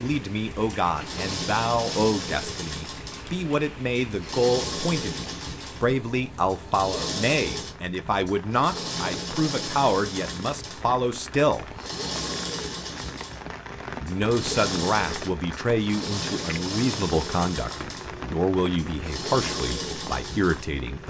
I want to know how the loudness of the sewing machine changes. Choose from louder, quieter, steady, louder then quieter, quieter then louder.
steady.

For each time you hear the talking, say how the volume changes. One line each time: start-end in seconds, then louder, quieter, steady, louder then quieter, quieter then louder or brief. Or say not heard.
0.0-11.7 steady
14.0-21.0 steady.